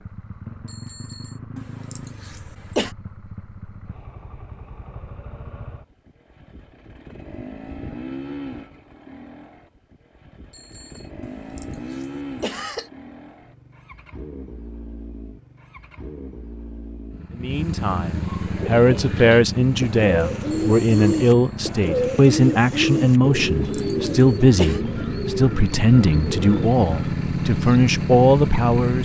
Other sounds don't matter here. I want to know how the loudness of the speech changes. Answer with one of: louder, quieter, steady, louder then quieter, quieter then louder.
steady.